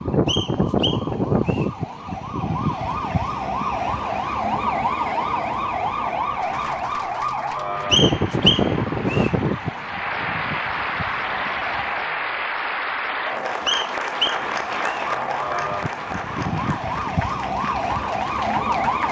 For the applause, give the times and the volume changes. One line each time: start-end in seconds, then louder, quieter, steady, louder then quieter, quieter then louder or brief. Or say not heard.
6.4-19.0 louder then quieter.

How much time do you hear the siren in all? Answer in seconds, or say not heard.
17 s.